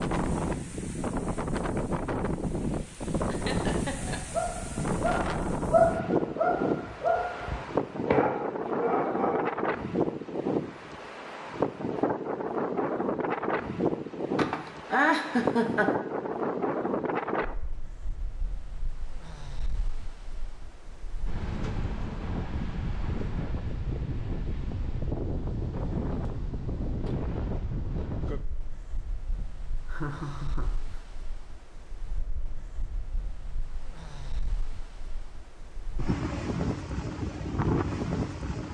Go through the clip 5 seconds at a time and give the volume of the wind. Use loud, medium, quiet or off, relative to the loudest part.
loud, loud, loud, loud, medium, medium, quiet, loud.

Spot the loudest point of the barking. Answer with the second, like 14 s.
6 s.